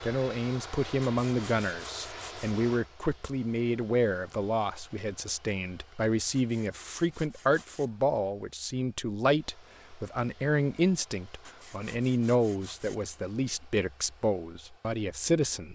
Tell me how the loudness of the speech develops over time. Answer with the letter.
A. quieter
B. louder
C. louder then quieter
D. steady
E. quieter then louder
D.